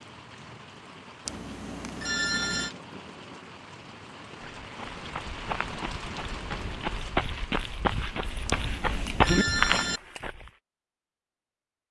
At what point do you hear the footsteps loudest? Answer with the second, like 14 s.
9 s.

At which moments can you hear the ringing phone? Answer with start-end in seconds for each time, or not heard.
1.2-2.7, 8.4-10.0.